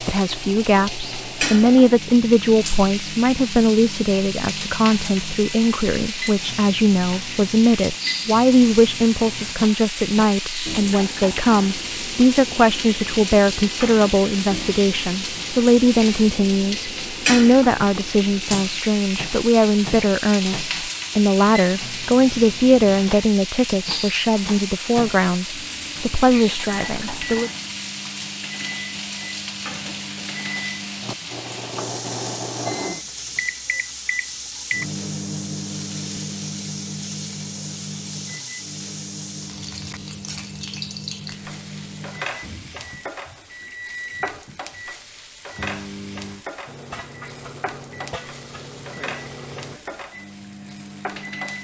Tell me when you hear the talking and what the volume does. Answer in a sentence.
The talking can be heard from 0.0 to 27.5 s, at a steady volume.